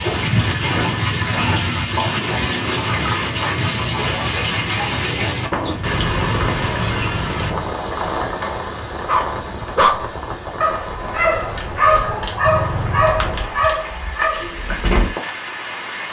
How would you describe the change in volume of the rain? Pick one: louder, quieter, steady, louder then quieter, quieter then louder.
quieter.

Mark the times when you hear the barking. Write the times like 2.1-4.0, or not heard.
8.4-15.2.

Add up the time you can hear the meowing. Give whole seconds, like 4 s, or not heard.
5 s.